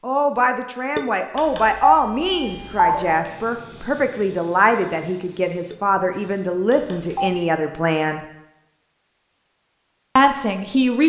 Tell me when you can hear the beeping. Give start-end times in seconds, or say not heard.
1.4-3.1, 6.7-7.3.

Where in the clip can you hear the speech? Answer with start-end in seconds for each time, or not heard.
0.0-8.2, 10.2-11.0.